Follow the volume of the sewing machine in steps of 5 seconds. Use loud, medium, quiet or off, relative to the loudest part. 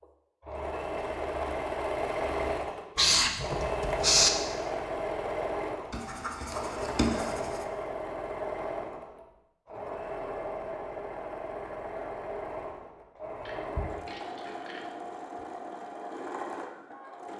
loud, loud, medium, medium.